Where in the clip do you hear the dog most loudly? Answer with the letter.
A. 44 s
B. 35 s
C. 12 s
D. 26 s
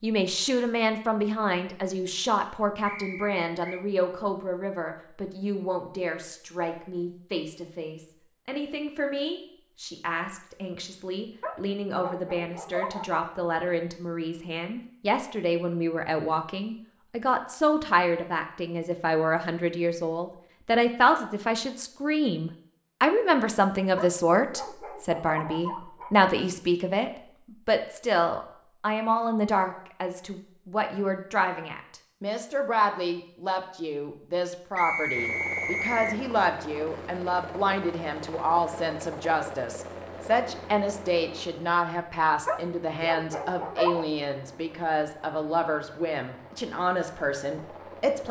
A.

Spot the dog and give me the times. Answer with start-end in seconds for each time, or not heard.
11.4-13.2, 23.9-26.1, 42.5-44.0.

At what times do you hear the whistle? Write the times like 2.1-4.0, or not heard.
2.9-3.9, 34.8-36.1.